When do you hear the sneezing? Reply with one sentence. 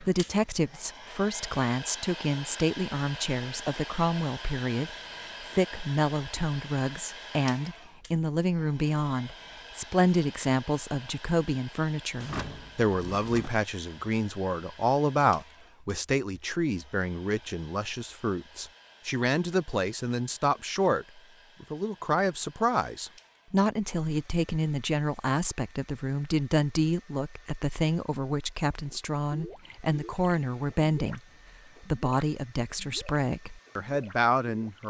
You can't hear the sneezing here.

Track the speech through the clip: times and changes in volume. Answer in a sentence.
The speech can be heard from 0.0 to 31.2 s, at a steady volume; and briefly from 31.8 to 34.8 s.